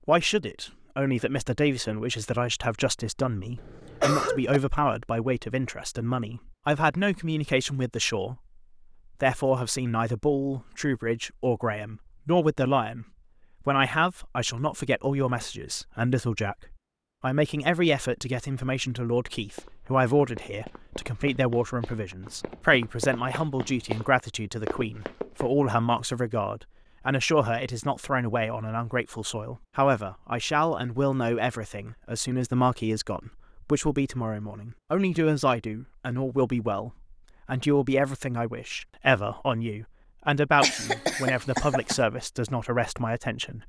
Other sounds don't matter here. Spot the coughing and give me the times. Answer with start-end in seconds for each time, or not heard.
3.5-4.6, 40.6-42.0.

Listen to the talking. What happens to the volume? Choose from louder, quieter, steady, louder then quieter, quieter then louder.
steady.